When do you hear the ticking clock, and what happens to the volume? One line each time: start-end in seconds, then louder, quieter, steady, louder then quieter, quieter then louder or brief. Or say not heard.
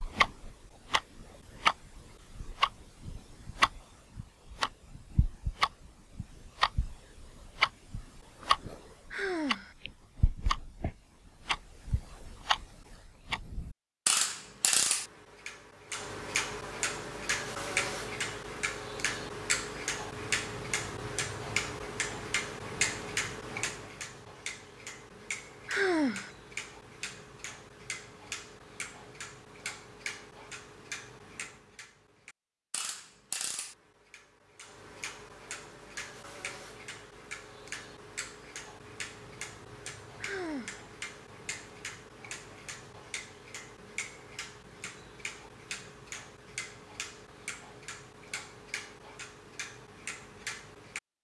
0.0-51.0 quieter.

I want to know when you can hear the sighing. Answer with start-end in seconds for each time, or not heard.
9.1-9.8, 25.6-26.3, 40.2-40.9.